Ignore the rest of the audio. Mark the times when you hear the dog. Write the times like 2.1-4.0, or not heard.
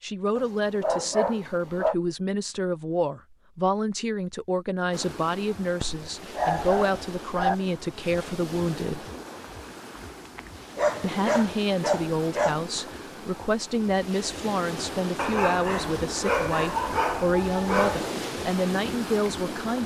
0.3-1.9, 5.8-7.5, 10.3-12.6, 15.2-18.1.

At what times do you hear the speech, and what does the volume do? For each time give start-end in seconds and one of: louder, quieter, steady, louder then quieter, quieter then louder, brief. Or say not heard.
0.0-9.1 steady
11.0-19.8 steady.